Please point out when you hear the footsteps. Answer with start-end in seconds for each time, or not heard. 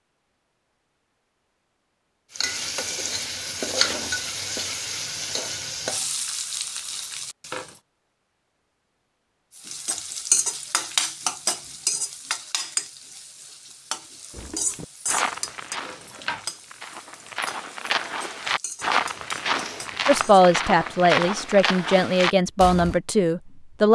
14.3-23.0.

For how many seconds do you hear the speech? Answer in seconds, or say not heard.
4 s.